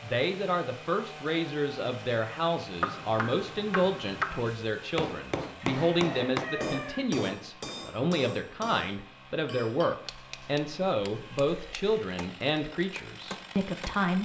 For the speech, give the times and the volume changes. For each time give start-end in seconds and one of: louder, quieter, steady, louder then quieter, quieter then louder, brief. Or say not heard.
0.0-14.1 steady.